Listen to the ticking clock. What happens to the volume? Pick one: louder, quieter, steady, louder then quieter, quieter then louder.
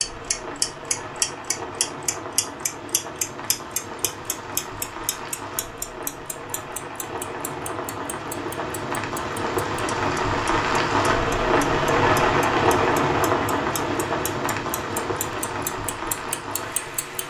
quieter then louder.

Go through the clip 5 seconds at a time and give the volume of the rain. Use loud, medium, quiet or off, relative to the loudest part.
quiet, medium, loud, medium.